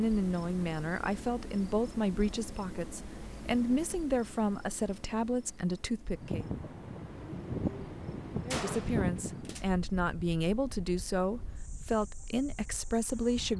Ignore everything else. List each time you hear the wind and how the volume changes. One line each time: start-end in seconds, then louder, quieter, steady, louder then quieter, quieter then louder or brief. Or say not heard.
6.1-13.5 quieter.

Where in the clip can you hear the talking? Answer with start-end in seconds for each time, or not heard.
0.0-6.5, 8.4-13.5.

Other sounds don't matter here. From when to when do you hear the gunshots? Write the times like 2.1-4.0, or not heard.
8.5-9.7.